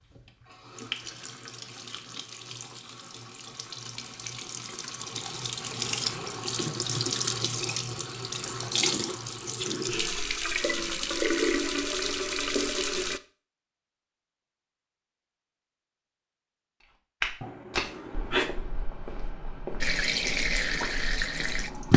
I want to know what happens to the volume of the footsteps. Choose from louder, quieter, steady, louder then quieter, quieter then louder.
quieter.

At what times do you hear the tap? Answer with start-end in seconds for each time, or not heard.
0.0-13.2, 19.8-21.9.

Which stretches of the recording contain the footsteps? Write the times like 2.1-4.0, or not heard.
17.2-21.9.